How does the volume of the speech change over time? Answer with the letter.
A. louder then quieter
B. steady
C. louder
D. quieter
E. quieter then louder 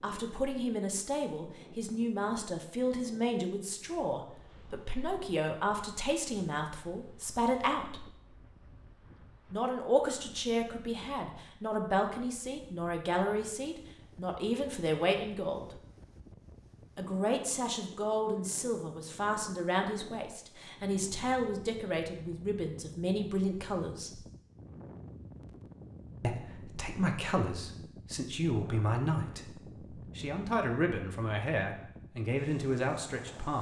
B.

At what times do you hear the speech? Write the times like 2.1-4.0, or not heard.
0.0-8.1, 9.5-15.8, 16.9-24.2, 26.2-33.5.